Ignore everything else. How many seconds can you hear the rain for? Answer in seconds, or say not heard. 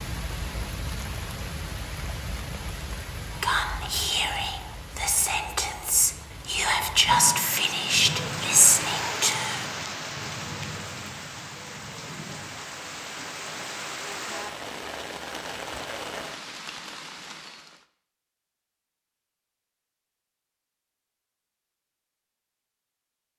18 s.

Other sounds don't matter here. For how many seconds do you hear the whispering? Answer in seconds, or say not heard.
6 s.